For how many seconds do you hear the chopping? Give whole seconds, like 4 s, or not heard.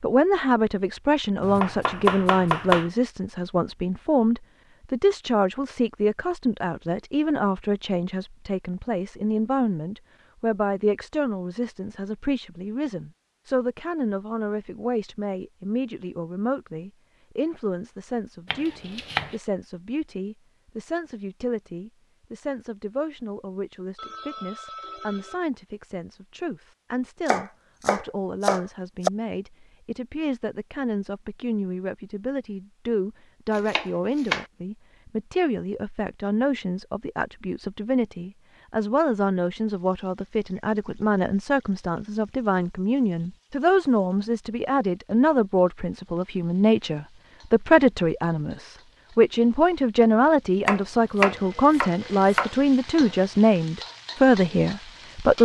7 s.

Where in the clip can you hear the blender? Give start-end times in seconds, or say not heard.
not heard.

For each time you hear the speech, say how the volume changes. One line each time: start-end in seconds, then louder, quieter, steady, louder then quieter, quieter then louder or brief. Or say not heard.
0.0-55.3 quieter then louder.